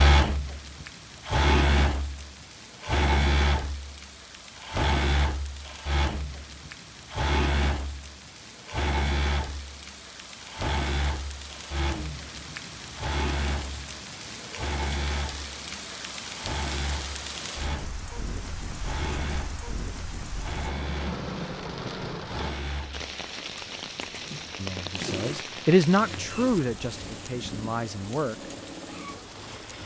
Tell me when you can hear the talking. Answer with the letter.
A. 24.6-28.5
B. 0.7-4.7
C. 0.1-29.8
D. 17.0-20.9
A.